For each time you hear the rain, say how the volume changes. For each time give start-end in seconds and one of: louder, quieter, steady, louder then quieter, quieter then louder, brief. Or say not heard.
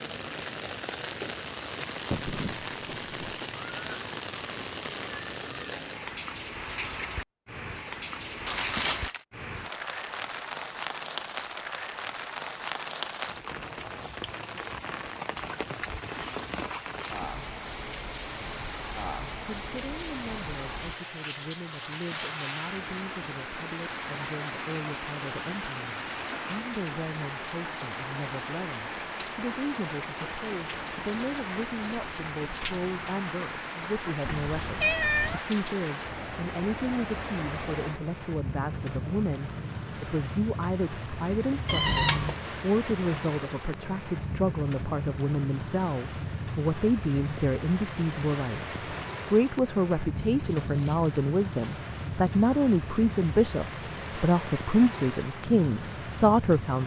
0.0-56.8 steady.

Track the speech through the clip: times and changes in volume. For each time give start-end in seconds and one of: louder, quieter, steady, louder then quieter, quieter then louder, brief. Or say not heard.
19.4-56.8 louder.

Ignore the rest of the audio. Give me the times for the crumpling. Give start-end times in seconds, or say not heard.
8.4-9.2, 21.8-23.1, 50.5-52.5.